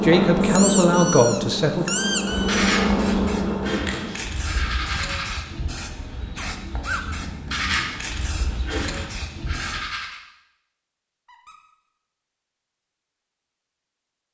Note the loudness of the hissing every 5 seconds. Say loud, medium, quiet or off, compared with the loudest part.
loud, loud, off.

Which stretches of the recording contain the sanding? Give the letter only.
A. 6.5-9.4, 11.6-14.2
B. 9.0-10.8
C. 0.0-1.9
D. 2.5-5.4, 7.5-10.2
D.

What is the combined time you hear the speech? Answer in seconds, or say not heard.
2 s.